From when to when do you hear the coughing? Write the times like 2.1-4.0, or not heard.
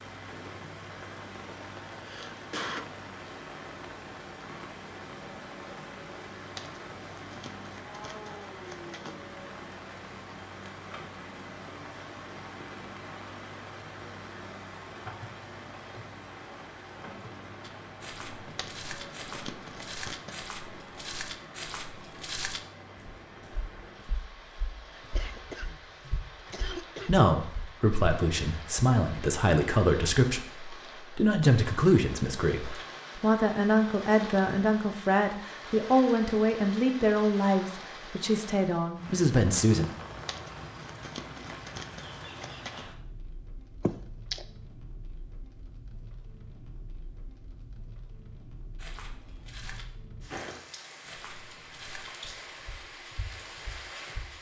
1.9-2.9, 25.1-25.8, 26.5-27.1, 43.9-44.4.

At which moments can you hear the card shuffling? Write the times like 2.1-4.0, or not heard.
6.5-9.2, 18.4-20.4, 40.1-42.9.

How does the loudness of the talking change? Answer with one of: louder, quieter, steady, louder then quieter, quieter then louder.
steady.